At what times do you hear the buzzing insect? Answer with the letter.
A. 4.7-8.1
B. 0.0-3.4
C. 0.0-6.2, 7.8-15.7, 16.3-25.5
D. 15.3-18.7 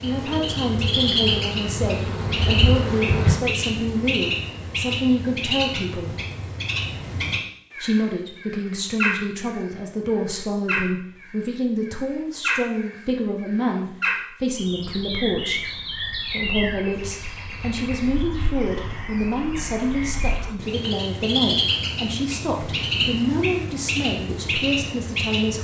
B.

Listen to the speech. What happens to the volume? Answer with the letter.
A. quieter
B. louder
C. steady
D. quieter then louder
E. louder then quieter
C.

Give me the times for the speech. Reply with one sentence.
You can hear the speech from 0.0 to 6.2 s, from 7.8 to 15.7 s and from 16.3 to 25.5 s.